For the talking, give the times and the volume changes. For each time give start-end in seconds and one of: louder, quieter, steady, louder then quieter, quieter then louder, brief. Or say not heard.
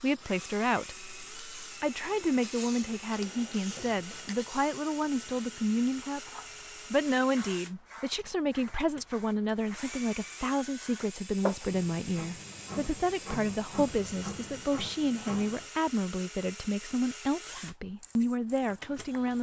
0.0-6.3 steady
6.9-19.3 steady.